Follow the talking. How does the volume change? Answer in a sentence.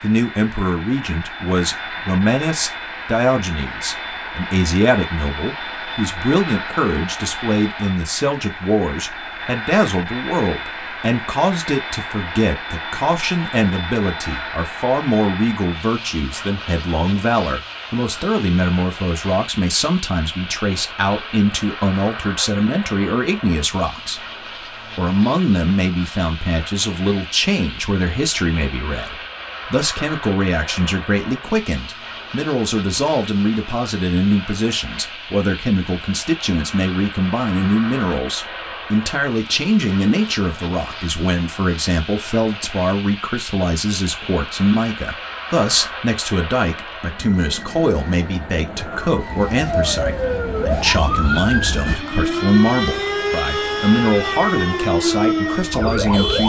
The volume of the talking stays about the same.